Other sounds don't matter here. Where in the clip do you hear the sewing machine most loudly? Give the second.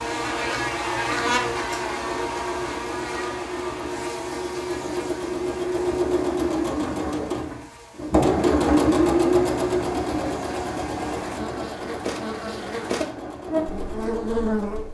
9 s.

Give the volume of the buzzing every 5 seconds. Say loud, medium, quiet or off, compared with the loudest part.
loud, quiet, loud.